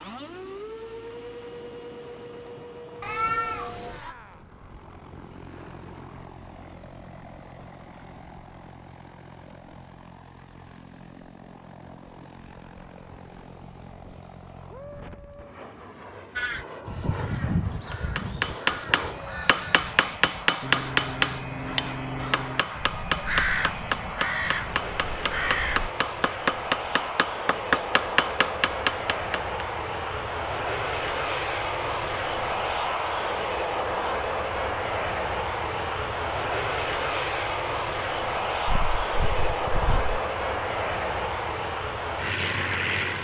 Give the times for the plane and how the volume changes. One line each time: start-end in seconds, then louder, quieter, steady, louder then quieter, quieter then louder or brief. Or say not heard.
0.0-43.2 louder.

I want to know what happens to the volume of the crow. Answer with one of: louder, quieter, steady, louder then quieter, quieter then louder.
quieter then louder.